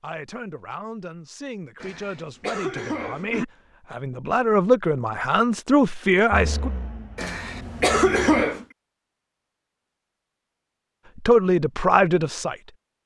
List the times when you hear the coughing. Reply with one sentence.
You can hear the coughing from 1.8 to 3.5 s and from 7.2 to 8.7 s.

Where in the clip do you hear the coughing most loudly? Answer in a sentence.
The volume of the coughing peaks at 8 seconds.